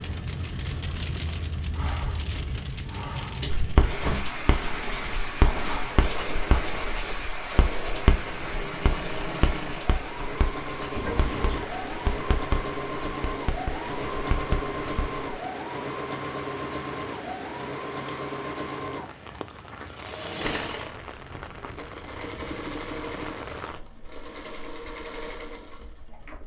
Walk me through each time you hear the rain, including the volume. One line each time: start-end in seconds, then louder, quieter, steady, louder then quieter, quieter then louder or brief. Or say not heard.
0.0-26.4 quieter.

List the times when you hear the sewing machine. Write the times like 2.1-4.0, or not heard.
0.0-26.4.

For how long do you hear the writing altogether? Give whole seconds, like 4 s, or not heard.
12 s.